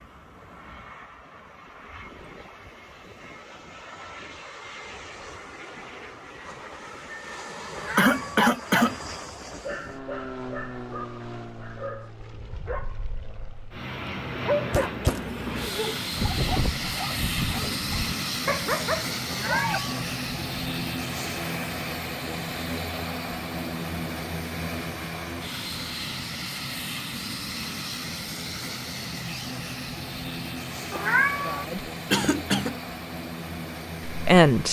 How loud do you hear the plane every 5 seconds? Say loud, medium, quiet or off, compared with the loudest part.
quiet, medium, medium, loud, loud, loud, medium.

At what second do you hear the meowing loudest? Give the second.
31 s.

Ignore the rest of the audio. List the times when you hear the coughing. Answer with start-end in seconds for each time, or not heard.
8.0-8.9, 14.7-15.8, 32.1-32.8.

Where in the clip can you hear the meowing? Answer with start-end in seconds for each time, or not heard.
7.7-8.4, 19.2-20.1, 30.9-31.6.